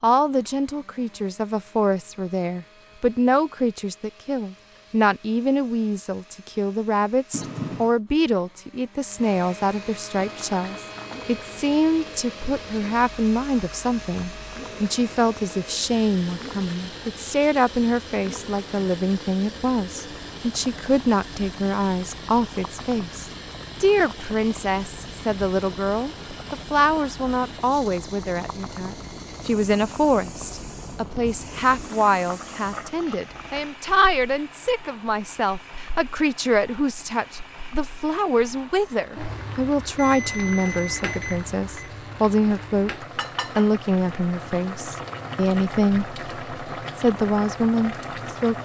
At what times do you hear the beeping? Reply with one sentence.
You can hear the beeping from 7.3 to 8.0 s and from 40.0 to 41.9 s.